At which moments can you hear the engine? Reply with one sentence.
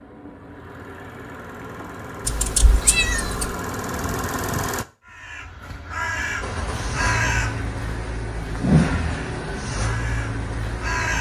The engine can be heard from 0.0 to 4.8 s and from 6.4 to 11.1 s.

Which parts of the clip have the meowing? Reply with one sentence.
You can hear the meowing from 2.2 to 3.5 s.